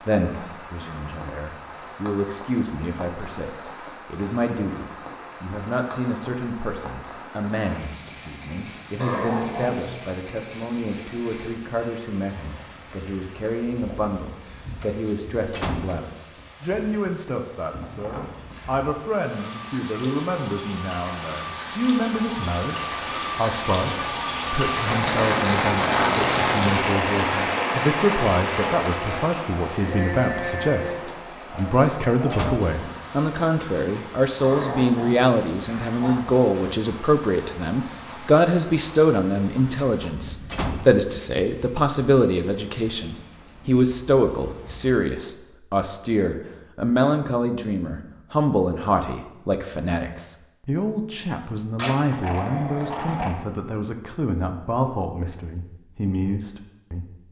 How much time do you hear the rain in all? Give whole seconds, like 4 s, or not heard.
45 s.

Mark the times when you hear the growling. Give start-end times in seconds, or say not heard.
9.0-10.1, 34.4-36.4, 51.8-53.4.